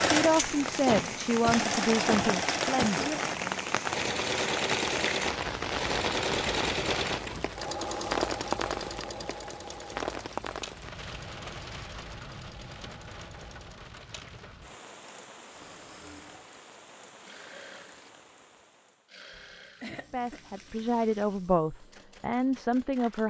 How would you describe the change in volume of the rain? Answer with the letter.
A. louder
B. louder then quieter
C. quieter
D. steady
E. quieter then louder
C.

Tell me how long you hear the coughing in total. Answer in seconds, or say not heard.
3 s.